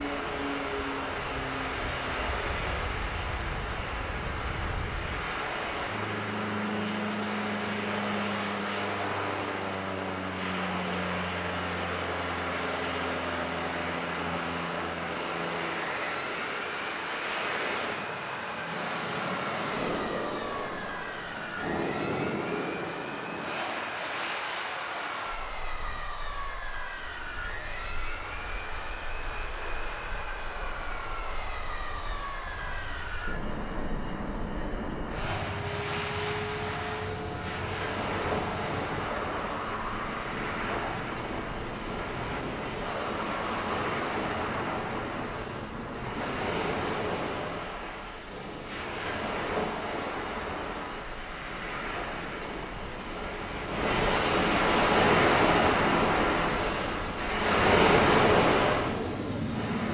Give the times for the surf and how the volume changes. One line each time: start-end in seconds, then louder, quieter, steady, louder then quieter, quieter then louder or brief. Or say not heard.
0.0-59.8 quieter then louder.